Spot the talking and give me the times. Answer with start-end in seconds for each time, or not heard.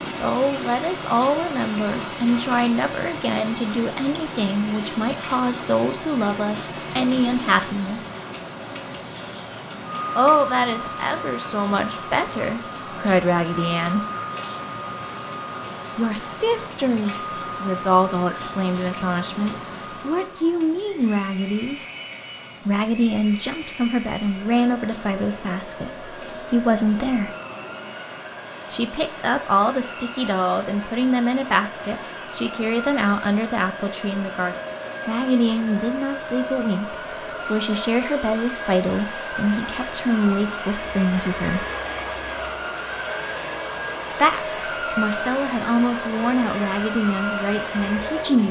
0.1-8.0, 10.2-14.1, 15.9-21.8, 22.6-27.4, 28.7-41.6, 44.1-48.4.